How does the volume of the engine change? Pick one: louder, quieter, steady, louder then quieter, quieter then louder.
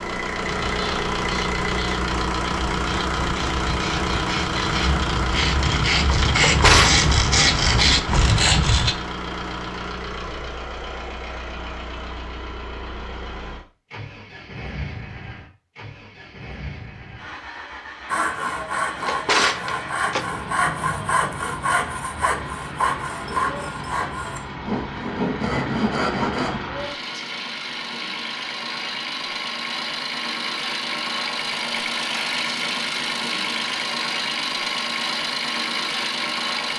quieter then louder.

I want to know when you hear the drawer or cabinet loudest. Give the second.
7 s.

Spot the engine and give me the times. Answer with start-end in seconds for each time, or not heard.
0.0-36.7.